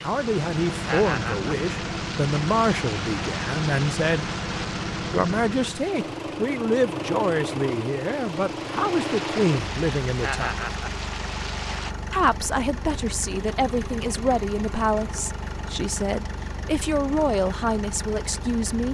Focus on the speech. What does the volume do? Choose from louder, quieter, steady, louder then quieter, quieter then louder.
steady.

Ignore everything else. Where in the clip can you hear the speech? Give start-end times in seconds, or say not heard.
0.0-4.3, 5.1-10.7, 12.1-18.9.